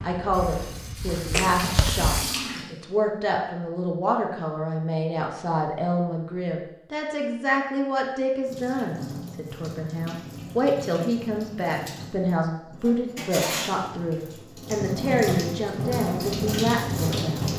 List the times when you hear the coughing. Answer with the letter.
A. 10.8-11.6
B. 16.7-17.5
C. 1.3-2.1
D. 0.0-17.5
C.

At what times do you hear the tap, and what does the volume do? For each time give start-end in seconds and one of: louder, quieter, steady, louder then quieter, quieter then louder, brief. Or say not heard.
0.2-2.6 brief
8.4-17.5 louder.